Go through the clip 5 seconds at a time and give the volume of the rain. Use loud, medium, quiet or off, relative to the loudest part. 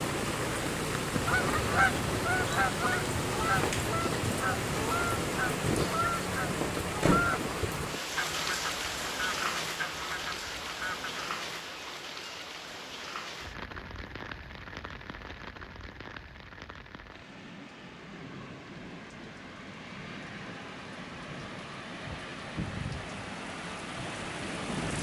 loud, loud, medium, quiet, medium.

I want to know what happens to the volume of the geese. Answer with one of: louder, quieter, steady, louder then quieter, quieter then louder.
quieter.